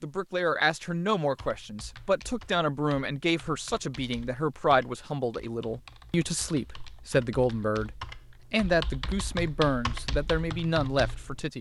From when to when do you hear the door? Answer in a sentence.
You can't hear the door here.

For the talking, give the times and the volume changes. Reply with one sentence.
The talking can be heard from 0.0 to 11.5 s, at a steady volume.